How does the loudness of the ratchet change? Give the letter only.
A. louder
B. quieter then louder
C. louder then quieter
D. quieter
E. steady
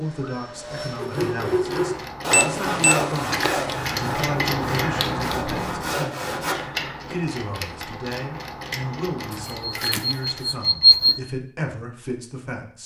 C.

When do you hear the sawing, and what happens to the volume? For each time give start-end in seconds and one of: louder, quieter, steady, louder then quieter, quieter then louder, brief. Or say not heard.
0.9-6.5 quieter then louder.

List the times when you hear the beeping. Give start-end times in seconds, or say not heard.
2.3-3.8, 9.3-11.2.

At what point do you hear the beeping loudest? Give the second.
11 s.